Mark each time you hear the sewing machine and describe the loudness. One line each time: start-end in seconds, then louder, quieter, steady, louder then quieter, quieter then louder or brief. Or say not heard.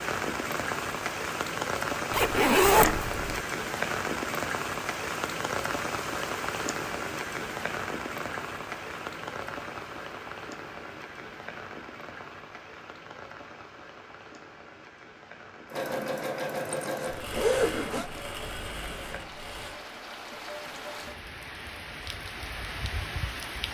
15.7-19.8 quieter.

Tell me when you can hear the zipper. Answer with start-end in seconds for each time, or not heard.
2.1-3.4, 16.8-18.1.